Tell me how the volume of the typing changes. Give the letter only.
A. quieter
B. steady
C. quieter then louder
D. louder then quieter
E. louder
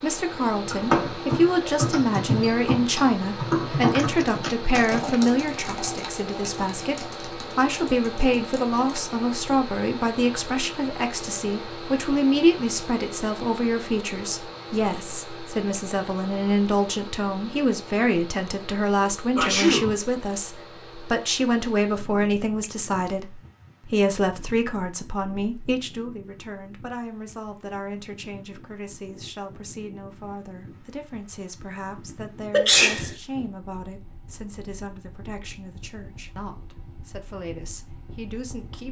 A.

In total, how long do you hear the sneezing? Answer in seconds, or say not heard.
3 s.